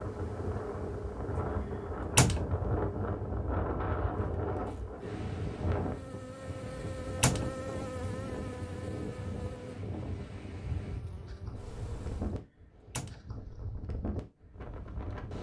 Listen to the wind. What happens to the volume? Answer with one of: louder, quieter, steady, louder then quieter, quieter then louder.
quieter.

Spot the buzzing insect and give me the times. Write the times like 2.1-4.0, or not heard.
0.0-12.4.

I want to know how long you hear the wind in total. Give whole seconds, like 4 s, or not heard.
15 s.